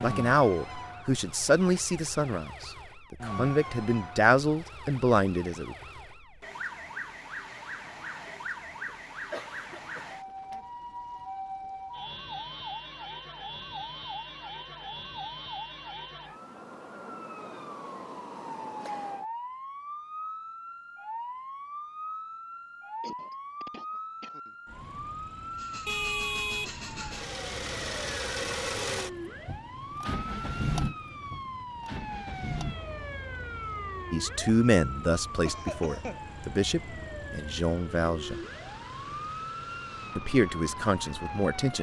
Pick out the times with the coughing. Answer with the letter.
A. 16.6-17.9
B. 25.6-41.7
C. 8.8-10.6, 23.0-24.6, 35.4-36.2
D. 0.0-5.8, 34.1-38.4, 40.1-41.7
C.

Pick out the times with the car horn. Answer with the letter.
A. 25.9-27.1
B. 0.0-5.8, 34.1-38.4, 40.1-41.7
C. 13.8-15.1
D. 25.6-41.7
A.